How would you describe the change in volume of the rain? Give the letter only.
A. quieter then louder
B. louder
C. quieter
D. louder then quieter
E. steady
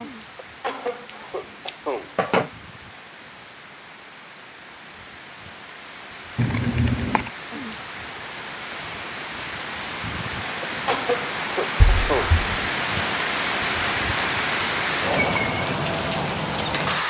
B.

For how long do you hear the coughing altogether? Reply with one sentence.
The coughing can be heard for 3 seconds in total.